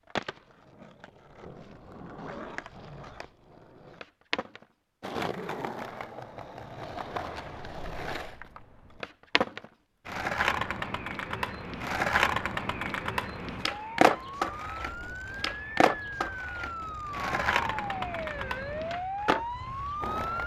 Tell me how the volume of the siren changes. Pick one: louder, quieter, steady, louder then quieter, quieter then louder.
louder.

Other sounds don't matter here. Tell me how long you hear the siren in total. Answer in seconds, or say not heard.
7 s.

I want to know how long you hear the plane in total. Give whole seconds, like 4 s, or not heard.
not heard.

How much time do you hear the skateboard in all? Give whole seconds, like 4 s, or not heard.
20 s.